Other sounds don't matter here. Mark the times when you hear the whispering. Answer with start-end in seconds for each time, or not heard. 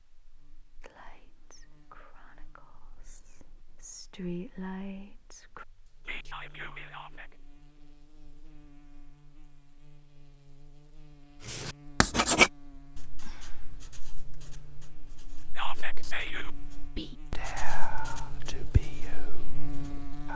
0.8-7.4, 15.6-20.3.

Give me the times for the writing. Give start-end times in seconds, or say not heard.
11.4-20.1.